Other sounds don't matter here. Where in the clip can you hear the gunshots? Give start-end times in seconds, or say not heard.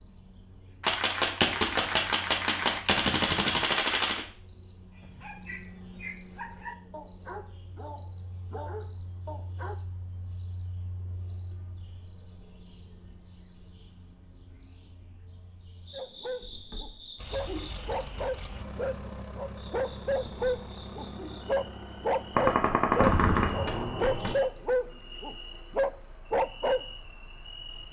0.8-4.2, 22.4-24.4.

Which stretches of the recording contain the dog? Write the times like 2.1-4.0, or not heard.
5.0-9.8, 15.9-26.8.